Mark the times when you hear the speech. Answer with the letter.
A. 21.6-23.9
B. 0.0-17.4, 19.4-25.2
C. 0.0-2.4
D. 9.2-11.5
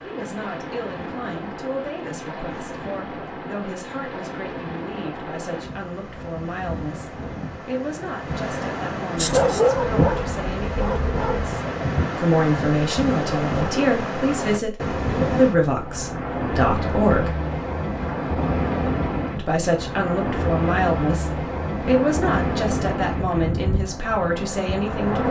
B.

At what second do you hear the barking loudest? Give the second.
10 s.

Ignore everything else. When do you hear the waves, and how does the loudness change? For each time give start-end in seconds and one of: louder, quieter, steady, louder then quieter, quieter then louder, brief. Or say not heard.
0.0-25.2 louder.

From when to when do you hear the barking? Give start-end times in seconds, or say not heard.
9.2-11.5.